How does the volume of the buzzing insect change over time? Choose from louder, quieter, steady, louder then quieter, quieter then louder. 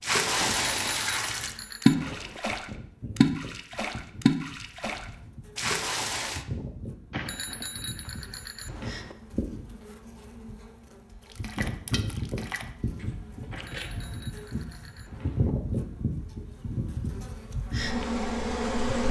louder.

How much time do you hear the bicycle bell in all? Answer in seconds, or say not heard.
6 s.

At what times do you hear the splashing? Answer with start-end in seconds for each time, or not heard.
0.0-6.5, 11.2-13.9.